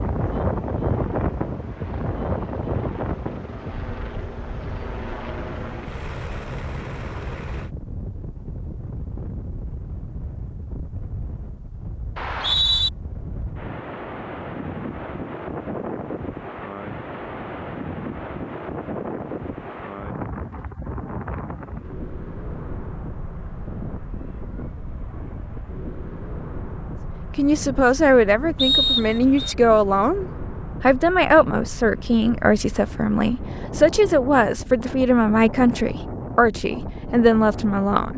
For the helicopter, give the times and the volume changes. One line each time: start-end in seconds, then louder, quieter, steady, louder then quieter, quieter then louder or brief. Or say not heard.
0.0-7.7 louder.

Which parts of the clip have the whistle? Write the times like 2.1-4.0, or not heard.
12.2-12.9, 28.6-29.6.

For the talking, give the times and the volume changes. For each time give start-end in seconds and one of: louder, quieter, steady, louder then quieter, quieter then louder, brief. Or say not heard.
27.4-38.1 steady.